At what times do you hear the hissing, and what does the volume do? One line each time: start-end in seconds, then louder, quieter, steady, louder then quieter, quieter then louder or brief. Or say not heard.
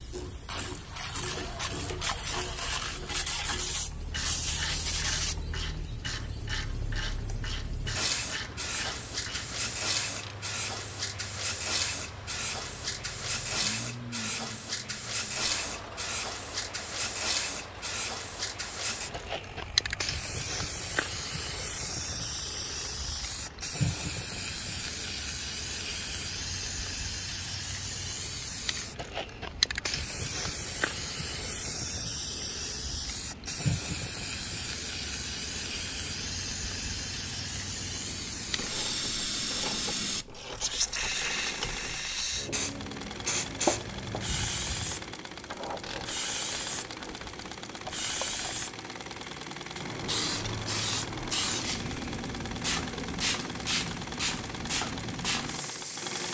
0.0-56.2 steady.